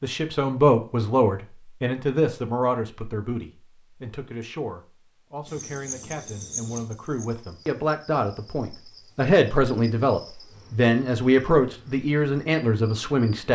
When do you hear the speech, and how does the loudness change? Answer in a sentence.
The speech can be heard from 0.0 to 13.5 s, getting quieter then louder.